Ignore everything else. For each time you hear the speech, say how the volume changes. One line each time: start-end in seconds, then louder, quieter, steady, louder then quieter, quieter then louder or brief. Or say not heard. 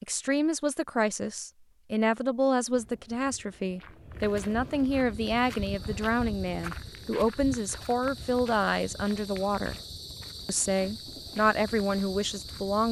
0.0-9.8 steady
10.4-12.8 brief.